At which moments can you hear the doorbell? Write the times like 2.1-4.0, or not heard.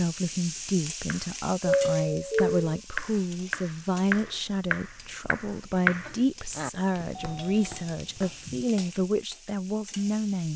1.6-2.5, 7.2-8.7.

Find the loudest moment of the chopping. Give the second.
6 s.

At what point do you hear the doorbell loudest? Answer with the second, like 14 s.
2 s.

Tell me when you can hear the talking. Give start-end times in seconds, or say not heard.
0.0-10.5.